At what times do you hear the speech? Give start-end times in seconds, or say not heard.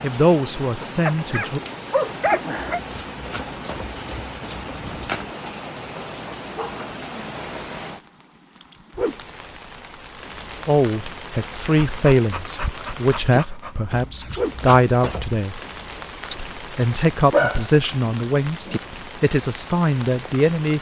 0.0-1.6, 10.7-15.6, 16.3-20.7.